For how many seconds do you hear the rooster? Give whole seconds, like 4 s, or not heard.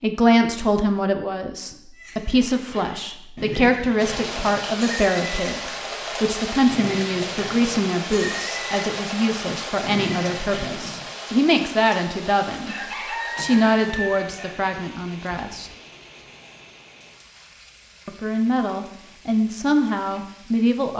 2 s.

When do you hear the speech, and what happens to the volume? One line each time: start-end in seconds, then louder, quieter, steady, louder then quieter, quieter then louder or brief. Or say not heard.
0.0-12.8 steady
13.3-15.7 brief
18.1-20.9 brief.